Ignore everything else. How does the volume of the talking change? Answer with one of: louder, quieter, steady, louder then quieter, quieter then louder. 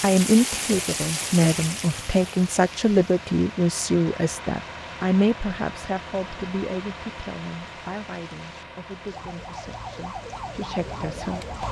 quieter.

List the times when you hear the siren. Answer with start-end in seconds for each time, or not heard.
9.1-11.6.